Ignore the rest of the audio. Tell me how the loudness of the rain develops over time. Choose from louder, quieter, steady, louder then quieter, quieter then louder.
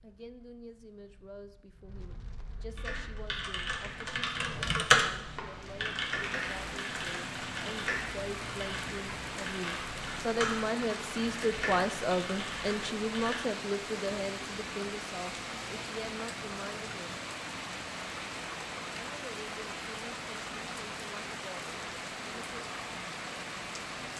louder.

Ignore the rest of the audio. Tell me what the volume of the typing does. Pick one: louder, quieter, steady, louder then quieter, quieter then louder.
quieter.